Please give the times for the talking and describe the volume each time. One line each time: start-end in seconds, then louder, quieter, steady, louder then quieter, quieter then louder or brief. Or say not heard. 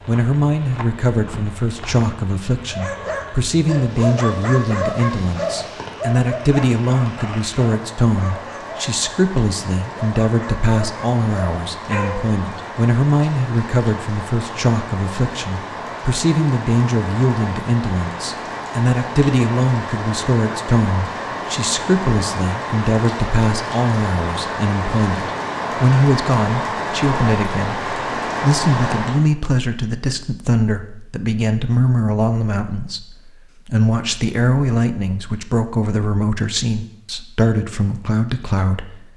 0.1-39.1 steady.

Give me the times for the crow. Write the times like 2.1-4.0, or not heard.
not heard.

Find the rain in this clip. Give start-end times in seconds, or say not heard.
0.0-29.2.